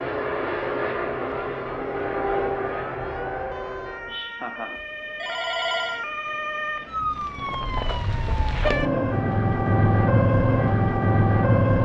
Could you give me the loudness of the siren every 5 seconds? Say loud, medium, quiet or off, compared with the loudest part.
quiet, medium, loud.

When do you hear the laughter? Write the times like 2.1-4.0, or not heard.
4.0-4.8.